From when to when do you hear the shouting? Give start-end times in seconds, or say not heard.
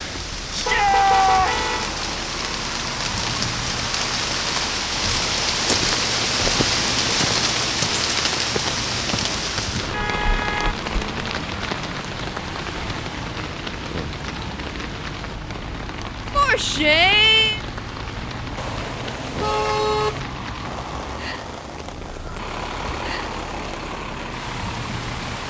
0.5-1.6, 16.4-17.6.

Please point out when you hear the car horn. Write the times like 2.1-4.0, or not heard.
0.7-1.9, 9.9-10.8, 18.6-20.2.